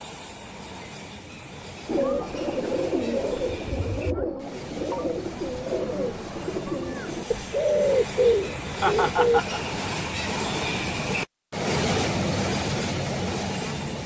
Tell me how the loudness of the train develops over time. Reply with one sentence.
The loudness of the train goes up.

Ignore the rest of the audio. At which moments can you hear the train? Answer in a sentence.
The train can be heard from 0.0 to 14.0 s.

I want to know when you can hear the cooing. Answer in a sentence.
You can hear the cooing from 1.9 to 9.4 s.